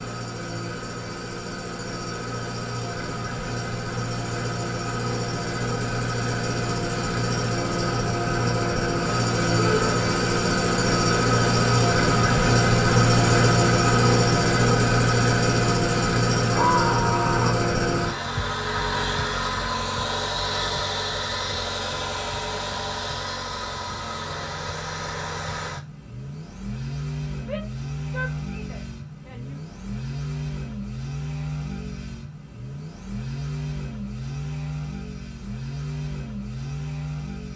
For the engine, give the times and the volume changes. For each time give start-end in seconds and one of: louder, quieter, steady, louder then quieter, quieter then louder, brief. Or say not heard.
0.0-37.5 louder then quieter.